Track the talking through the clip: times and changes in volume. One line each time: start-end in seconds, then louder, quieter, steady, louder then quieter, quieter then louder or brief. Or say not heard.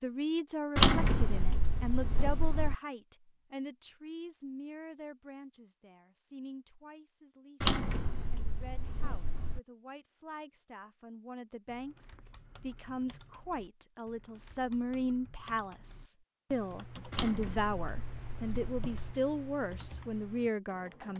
0.0-21.1 quieter then louder.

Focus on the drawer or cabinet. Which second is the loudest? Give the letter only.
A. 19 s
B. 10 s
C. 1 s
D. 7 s
C.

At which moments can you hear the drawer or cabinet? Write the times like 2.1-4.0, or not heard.
0.8-2.8, 7.6-9.6, 17.1-19.1.